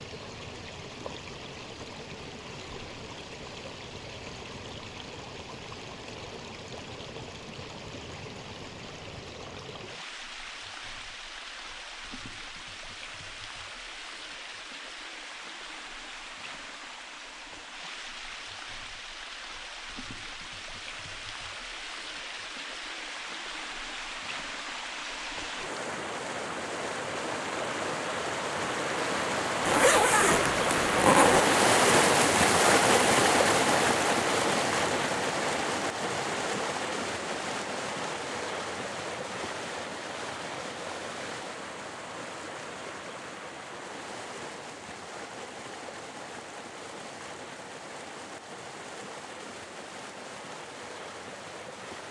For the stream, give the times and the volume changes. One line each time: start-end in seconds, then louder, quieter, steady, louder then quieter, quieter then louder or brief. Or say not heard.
0.0-52.0 louder then quieter.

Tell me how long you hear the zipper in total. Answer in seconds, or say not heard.
2 s.